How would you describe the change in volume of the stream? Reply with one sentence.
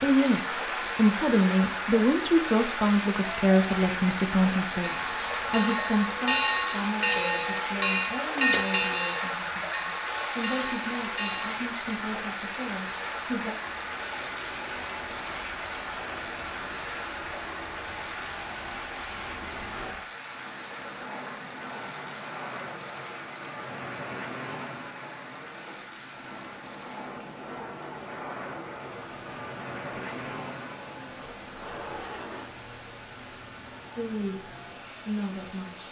The loudness of the stream goes down.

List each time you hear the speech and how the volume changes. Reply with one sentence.
The speech can be heard from 0.0 to 13.6 s, getting quieter; and briefly from 34.0 to 35.8 s.